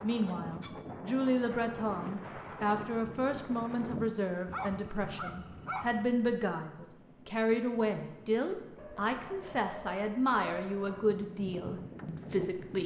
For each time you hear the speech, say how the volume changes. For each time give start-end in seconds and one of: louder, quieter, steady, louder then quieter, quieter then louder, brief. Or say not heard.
0.0-12.8 steady.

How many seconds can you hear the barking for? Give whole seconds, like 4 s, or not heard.
4 s.